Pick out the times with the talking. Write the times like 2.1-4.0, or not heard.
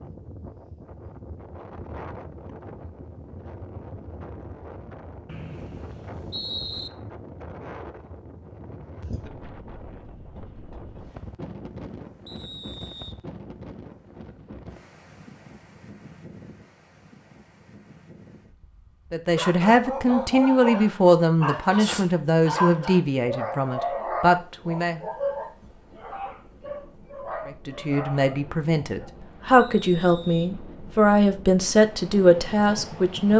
19.1-25.1, 27.4-33.3.